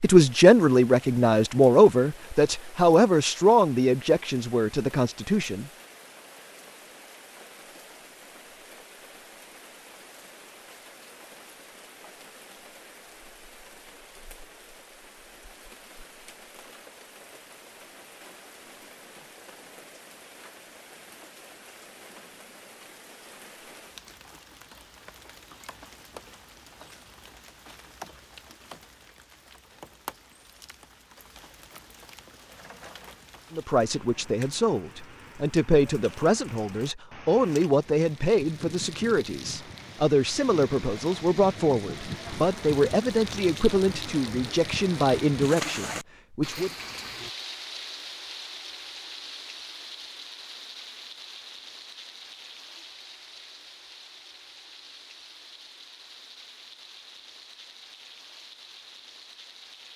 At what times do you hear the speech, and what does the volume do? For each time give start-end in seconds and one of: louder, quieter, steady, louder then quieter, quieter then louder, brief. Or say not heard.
0.0-5.7 quieter
33.5-46.7 steady.